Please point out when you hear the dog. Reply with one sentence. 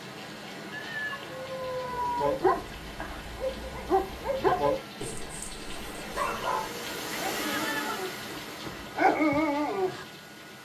The dog can be heard from 2.1 to 10.1 s.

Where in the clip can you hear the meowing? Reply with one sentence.
You can hear the meowing from 0.7 to 2.2 s and from 7.3 to 8.0 s.